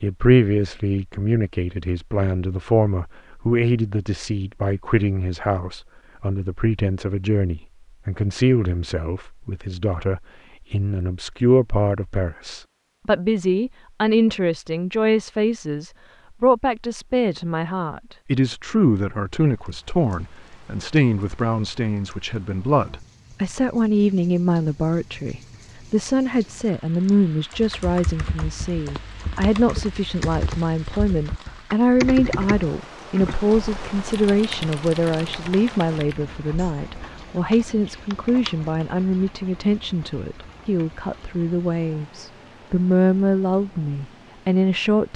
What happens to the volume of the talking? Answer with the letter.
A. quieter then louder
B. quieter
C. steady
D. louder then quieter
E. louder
C.